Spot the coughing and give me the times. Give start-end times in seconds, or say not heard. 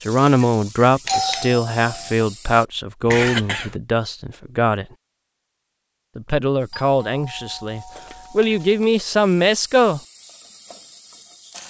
3.0-3.8, 8.0-8.8.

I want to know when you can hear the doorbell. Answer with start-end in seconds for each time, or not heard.
1.1-2.1, 6.7-8.7.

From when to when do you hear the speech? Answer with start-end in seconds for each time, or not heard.
0.0-4.8, 6.2-10.0.